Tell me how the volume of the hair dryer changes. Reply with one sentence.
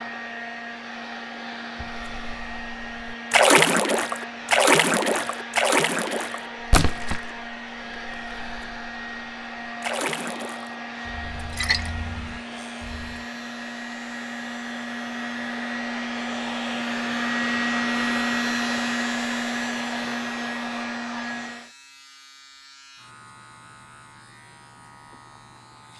The volume of the hair dryer goes up.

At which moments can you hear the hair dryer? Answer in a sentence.
You can hear the hair dryer from 0.0 to 21.7 s.